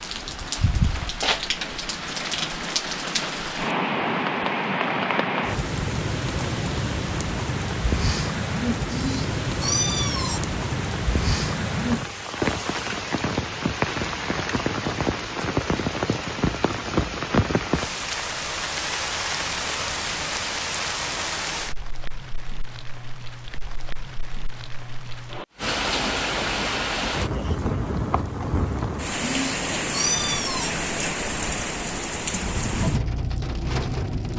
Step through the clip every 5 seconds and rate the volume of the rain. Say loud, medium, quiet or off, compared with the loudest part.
loud, loud, loud, loud, medium, loud, loud.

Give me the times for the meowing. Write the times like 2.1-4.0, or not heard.
8.8-10.4, 29.2-30.7.